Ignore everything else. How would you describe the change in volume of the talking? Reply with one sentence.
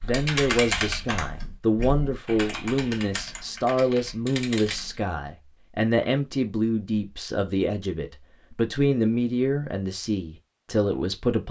The volume of the talking stays about the same.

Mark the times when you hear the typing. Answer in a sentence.
You can hear the typing from 0.0 to 5.0 s.